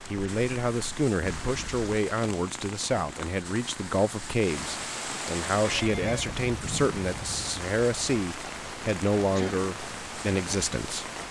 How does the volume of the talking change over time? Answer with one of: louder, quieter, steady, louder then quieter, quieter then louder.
steady.